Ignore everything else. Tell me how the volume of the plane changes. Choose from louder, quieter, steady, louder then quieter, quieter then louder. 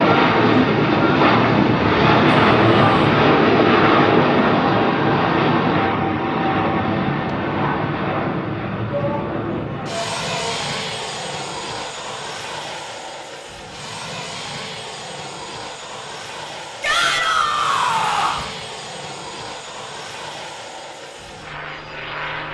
quieter.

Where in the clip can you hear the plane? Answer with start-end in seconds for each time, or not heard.
0.0-22.4.